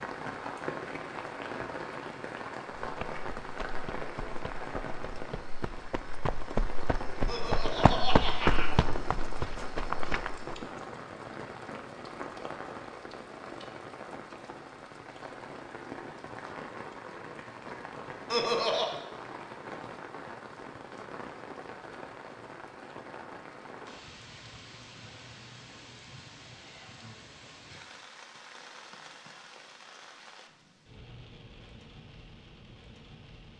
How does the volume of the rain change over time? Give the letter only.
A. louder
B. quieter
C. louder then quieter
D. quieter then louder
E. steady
B.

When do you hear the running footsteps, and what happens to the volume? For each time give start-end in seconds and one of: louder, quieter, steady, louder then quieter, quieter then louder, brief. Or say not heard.
2.8-10.7 louder then quieter.